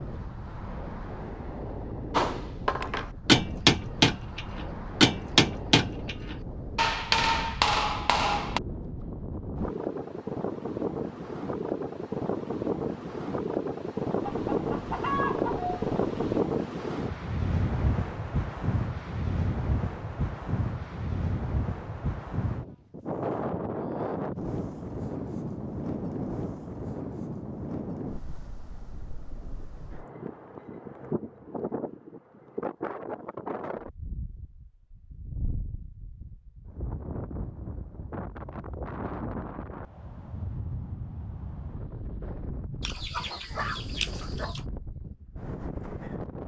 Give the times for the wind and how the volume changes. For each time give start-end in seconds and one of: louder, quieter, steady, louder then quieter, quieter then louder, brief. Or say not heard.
0.0-46.4 louder then quieter.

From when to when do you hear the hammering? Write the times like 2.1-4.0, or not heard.
2.1-8.6.